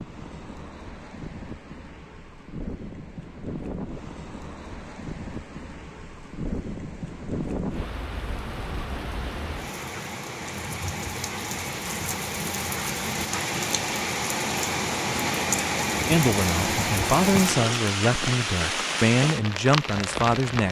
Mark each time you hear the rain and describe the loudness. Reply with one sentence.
The rain can be heard from 0.0 to 20.6 s, getting louder.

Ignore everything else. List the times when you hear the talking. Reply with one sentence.
The talking can be heard from 16.1 to 20.6 s.